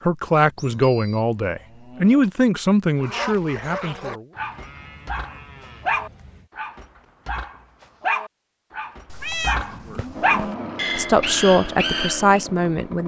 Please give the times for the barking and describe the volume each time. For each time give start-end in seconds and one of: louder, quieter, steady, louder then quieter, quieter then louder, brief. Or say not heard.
3.0-12.4 louder.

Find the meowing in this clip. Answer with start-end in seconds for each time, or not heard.
9.1-10.6.